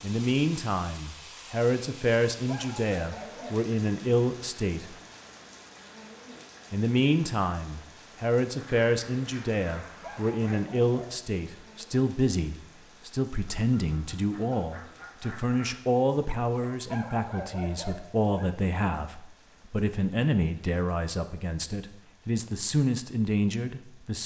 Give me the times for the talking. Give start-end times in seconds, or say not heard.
0.0-5.0, 6.7-24.2.